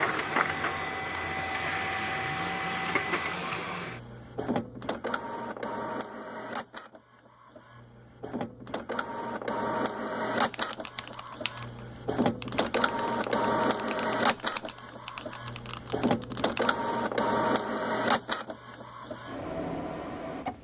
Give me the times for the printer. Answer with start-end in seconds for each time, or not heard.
0.0-20.5.